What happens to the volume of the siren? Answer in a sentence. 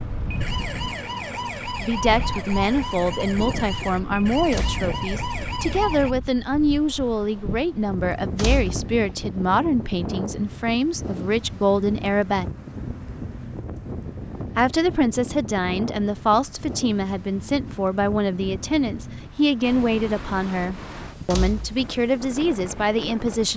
The loudness of the siren stays about the same.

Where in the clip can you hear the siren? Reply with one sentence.
The siren can be heard from 0.0 to 6.2 s.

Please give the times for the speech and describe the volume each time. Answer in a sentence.
The speech can be heard from 1.8 to 12.4 s, at a steady volume; and from 14.6 to 23.5 s, at a steady volume.